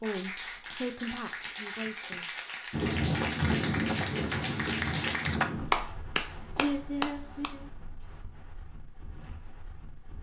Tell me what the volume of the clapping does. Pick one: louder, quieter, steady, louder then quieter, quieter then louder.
louder.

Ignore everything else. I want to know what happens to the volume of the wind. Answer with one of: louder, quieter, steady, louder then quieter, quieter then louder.
quieter.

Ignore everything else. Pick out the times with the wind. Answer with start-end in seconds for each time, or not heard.
2.7-10.1.